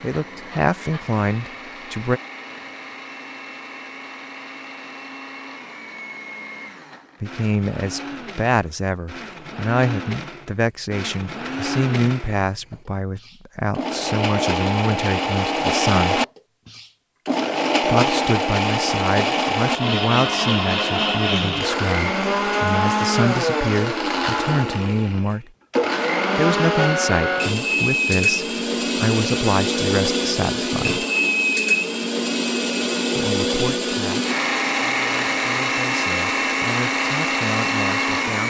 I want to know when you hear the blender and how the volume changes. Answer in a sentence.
The blender can be heard from 0.0 to 38.4 s, getting louder.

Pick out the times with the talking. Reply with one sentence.
The talking can be heard from 0.0 to 2.2 s, from 7.2 to 16.2 s, from 17.8 to 25.4 s, from 26.4 to 31.1 s and from 33.1 to 38.4 s.